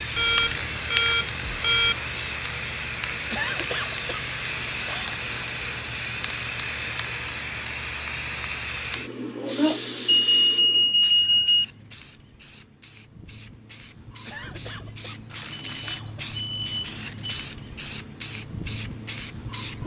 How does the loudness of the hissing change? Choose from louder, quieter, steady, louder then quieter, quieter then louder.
quieter then louder.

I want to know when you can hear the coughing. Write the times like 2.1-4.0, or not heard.
3.3-5.2, 14.2-16.4.